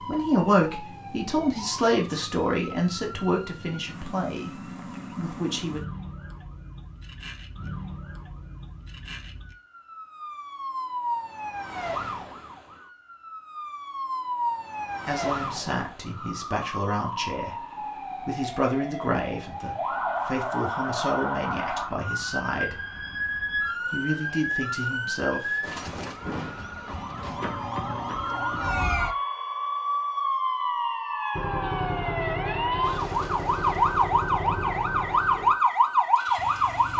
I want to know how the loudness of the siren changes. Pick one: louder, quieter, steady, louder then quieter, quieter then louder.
louder.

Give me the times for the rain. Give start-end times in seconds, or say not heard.
not heard.